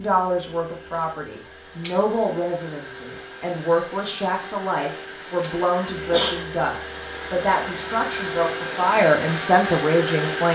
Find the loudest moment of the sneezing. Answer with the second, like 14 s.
6 s.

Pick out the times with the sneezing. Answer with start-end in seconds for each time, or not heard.
1.8-2.4, 5.4-6.3.